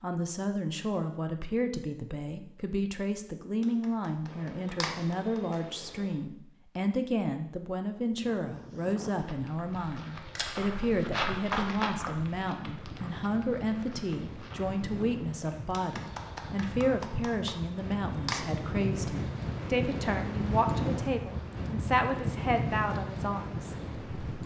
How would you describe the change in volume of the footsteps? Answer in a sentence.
The loudness of the footsteps goes up, then down.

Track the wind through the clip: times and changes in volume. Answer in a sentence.
You can hear the wind from 7.9 to 24.4 s, getting louder.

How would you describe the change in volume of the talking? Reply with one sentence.
The volume of the talking stays about the same.